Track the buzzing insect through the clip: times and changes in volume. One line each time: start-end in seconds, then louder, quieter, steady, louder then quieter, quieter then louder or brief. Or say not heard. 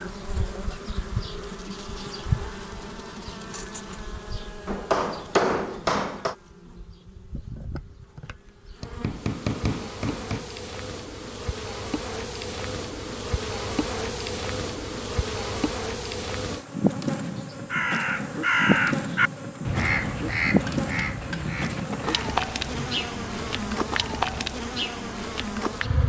0.0-26.0 quieter then louder.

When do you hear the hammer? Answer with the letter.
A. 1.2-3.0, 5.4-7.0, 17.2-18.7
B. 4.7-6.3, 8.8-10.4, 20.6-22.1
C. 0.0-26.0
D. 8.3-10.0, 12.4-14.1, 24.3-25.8
B.